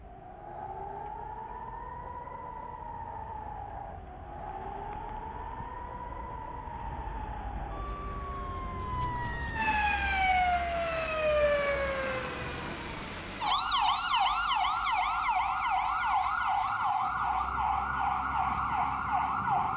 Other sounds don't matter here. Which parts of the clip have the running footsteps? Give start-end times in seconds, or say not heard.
not heard.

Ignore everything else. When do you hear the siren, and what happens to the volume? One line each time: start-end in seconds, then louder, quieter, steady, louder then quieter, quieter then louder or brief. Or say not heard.
0.0-19.7 louder.